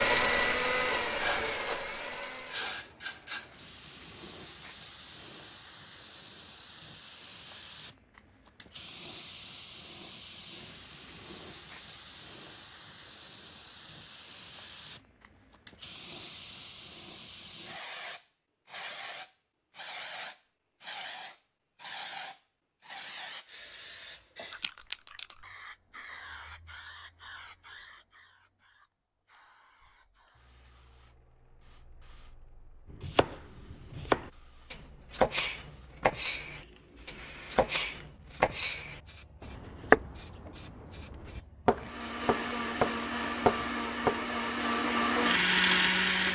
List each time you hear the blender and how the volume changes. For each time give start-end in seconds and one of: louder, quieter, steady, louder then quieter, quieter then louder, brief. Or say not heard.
0.0-2.8 brief
41.8-46.3 louder.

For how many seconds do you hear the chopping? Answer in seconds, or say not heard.
11 s.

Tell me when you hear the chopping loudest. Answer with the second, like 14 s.
40 s.